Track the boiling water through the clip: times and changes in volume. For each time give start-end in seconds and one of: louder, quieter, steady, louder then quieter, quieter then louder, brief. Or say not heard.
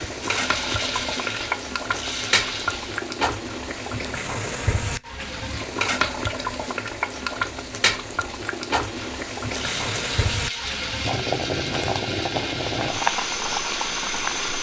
0.0-14.5 steady.